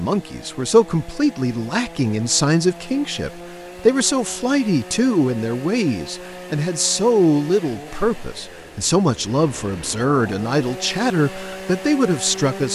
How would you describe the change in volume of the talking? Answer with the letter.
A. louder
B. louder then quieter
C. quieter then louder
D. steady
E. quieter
D.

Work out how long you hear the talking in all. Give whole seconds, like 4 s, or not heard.
13 s.